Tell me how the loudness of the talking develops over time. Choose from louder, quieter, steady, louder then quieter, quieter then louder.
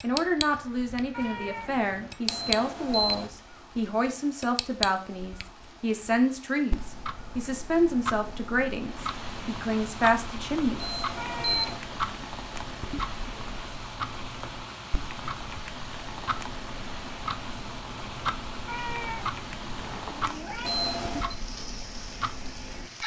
steady.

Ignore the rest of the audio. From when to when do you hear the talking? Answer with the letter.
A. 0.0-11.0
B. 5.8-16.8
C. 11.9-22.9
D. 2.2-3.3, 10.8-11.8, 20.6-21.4
A.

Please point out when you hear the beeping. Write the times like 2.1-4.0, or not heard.
2.2-3.3, 10.8-11.8, 20.6-21.4.